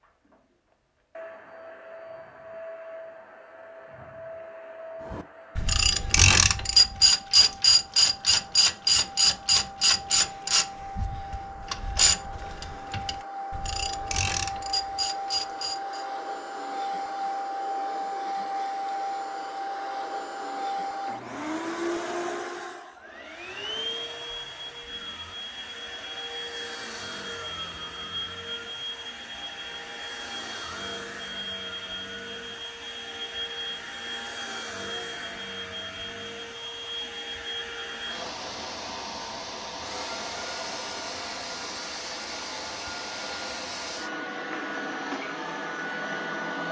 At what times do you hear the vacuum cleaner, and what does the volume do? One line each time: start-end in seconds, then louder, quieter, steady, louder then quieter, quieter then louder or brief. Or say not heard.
0.0-46.6 louder.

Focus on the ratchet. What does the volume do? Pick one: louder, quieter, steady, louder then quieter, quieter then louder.
quieter.